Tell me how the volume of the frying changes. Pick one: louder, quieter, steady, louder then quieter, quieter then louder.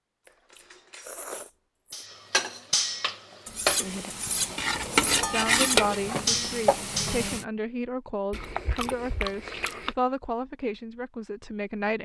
louder then quieter.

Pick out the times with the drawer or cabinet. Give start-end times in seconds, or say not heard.
not heard.